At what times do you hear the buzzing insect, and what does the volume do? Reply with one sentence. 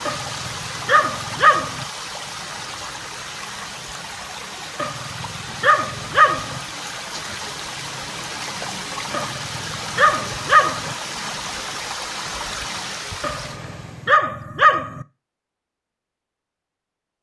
The buzzing insect can't be heard in this clip.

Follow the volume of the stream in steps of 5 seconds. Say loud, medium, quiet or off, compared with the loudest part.
loud, loud, loud, off.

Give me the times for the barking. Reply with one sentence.
The barking can be heard from 0.1 to 1.9 s, from 4.8 to 6.6 s, from 9.1 to 10.9 s and from 13.2 to 15.1 s.